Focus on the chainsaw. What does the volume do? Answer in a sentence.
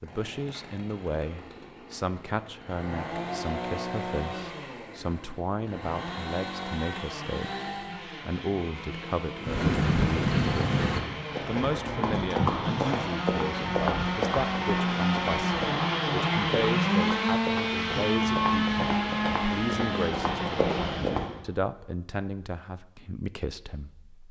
The volume of the chainsaw goes up.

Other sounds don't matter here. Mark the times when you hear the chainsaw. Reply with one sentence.
You can hear the chainsaw from 0.0 to 21.4 s.